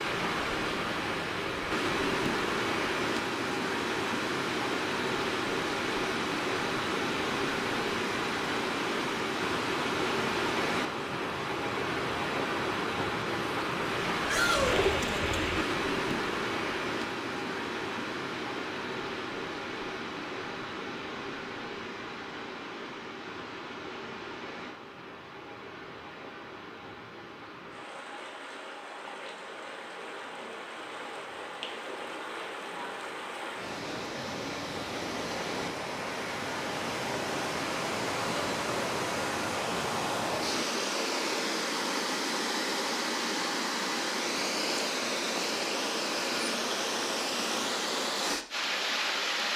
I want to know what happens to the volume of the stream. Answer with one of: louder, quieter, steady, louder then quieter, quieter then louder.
quieter then louder.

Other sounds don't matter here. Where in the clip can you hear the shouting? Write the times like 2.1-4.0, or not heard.
14.2-14.8.